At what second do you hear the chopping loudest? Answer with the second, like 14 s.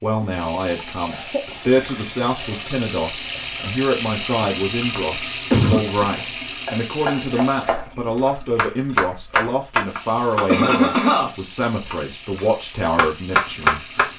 14 s.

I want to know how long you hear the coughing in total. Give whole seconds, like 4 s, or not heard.
2 s.